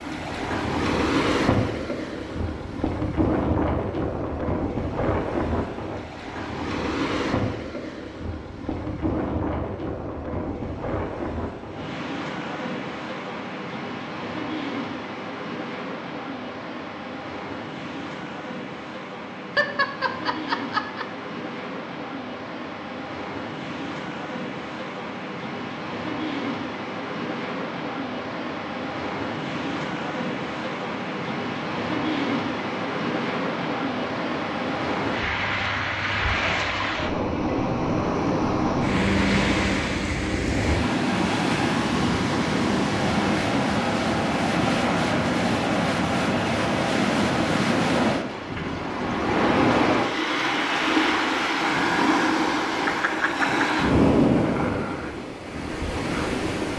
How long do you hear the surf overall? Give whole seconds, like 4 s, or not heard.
57 s.